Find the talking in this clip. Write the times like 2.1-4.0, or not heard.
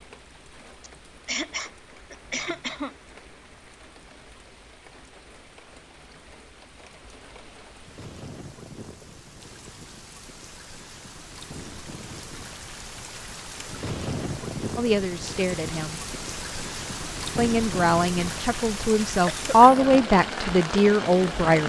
14.8-16.0, 17.4-21.6.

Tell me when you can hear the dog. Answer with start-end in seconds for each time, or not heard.
not heard.